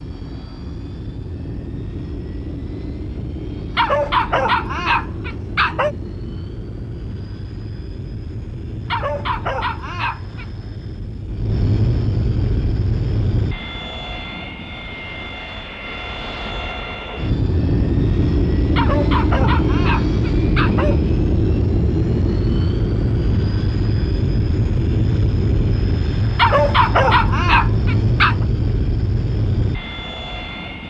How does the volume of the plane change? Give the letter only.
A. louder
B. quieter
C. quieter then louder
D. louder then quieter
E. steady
A.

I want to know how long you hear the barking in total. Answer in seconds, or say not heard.
8 s.